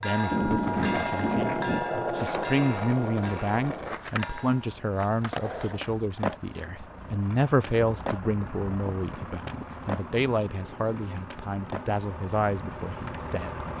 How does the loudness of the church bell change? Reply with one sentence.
The loudness of the church bell goes down.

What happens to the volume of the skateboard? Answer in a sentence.
The loudness of the skateboard goes down.